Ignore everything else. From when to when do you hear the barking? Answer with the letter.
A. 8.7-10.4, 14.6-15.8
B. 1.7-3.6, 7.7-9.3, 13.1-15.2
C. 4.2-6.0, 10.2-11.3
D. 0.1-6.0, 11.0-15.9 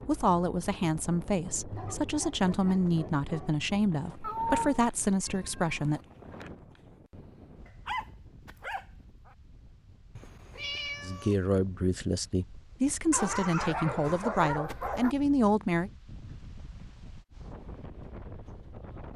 B.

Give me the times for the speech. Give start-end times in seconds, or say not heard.
0.1-6.0, 11.0-15.9.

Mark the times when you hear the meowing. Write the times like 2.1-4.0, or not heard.
4.2-6.0, 10.2-11.3.